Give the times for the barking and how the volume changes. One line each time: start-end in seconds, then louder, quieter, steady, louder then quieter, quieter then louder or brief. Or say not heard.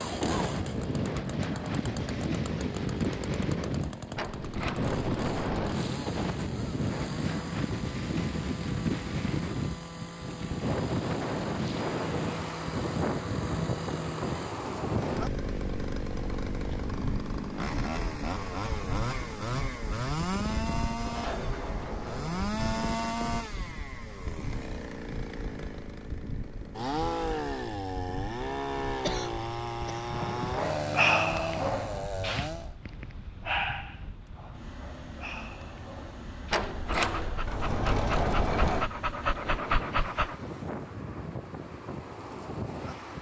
30.1-40.4 quieter then louder.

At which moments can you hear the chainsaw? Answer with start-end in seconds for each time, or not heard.
0.0-32.8.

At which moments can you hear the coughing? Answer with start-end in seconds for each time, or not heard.
29.0-30.1.